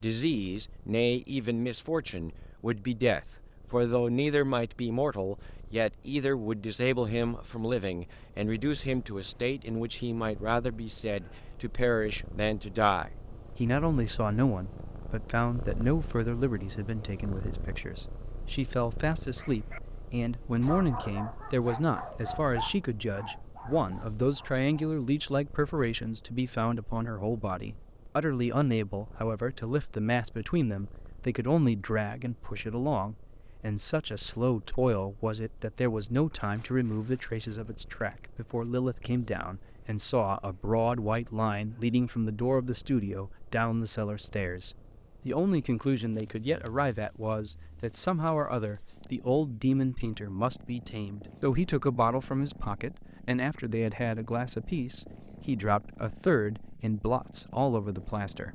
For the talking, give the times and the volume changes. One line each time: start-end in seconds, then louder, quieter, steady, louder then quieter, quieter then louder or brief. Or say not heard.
0.0-58.5 steady.